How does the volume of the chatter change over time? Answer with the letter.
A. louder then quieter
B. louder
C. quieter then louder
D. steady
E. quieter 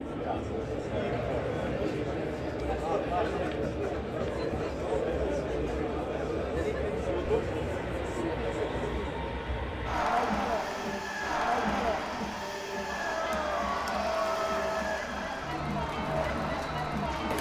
D.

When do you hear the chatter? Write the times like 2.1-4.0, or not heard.
0.0-17.3.